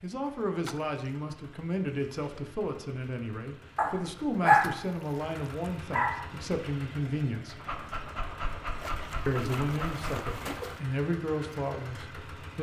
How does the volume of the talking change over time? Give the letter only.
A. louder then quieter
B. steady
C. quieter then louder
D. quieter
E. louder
B.